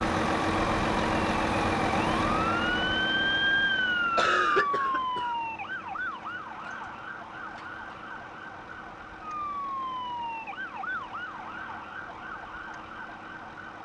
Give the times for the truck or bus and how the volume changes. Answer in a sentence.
The truck or bus can be heard from 0.0 to 13.8 s, getting quieter.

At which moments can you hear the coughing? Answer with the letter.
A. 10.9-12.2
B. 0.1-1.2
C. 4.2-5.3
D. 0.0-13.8
C.